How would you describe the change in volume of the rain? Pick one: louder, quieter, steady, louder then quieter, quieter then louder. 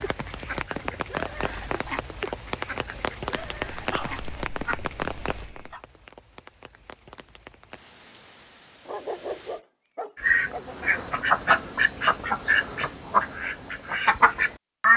quieter.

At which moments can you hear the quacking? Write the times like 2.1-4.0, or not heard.
0.0-4.8, 10.2-14.9.